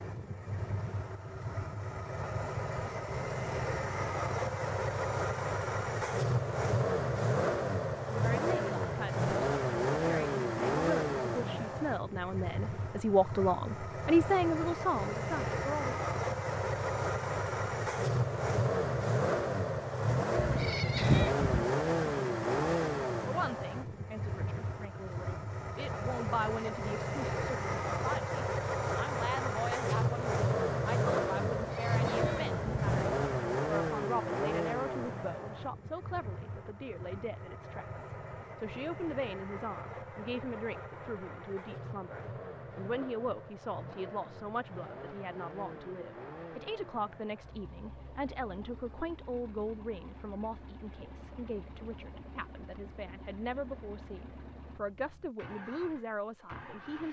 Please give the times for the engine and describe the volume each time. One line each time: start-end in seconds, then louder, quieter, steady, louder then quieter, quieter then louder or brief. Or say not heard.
0.0-57.0 quieter.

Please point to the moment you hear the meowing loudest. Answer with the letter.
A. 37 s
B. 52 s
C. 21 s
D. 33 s
C.